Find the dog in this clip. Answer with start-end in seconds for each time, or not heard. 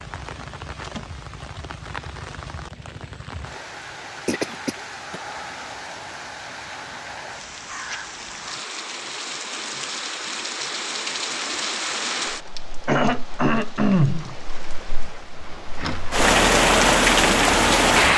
not heard.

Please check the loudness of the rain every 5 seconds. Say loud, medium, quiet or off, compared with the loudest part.
quiet, quiet, quiet, loud.